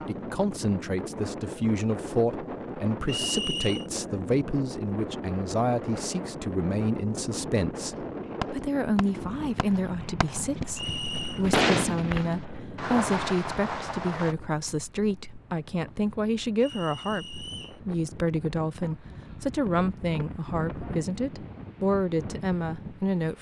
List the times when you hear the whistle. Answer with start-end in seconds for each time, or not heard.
3.0-3.9, 10.8-11.4, 16.6-17.8.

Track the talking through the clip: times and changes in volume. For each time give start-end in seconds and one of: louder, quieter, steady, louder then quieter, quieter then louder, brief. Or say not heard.
0.1-23.3 steady.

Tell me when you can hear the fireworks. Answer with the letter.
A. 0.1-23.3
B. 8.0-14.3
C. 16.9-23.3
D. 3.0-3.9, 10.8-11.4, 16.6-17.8
B.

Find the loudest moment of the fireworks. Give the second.
12 s.